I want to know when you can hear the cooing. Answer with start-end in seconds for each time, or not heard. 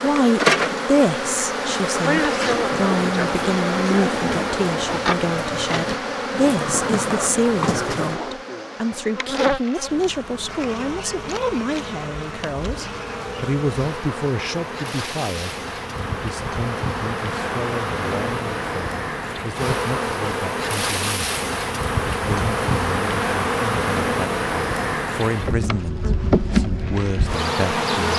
2.1-8.2.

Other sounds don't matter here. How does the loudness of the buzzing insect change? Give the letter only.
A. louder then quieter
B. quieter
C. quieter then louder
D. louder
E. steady
C.